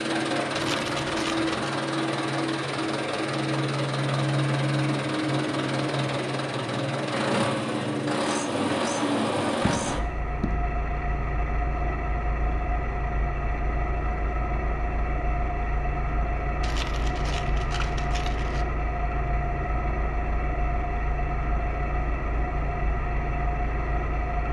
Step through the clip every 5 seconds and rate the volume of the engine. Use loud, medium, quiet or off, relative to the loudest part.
loud, loud, medium, medium, medium.